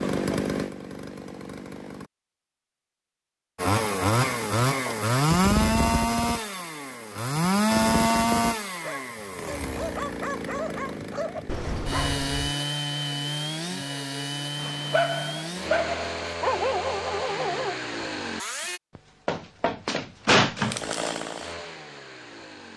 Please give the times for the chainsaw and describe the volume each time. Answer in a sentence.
You can hear the chainsaw briefly from 0.0 to 2.1 s; from 3.5 to 18.8 s, getting quieter; and briefly from 20.6 to 22.7 s.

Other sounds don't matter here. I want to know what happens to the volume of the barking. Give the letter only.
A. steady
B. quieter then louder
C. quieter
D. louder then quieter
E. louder
E.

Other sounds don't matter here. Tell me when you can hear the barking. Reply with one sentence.
You can hear the barking from 8.8 to 12.2 s and from 14.6 to 17.8 s.